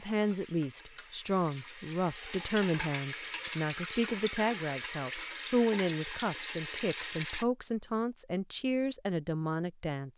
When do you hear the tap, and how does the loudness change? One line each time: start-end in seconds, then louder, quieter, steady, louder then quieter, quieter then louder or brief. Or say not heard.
0.0-7.5 louder.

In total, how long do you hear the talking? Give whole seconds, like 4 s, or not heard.
10 s.